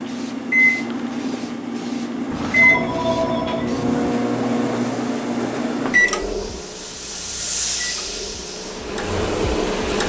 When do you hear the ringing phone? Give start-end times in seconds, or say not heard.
2.3-4.2.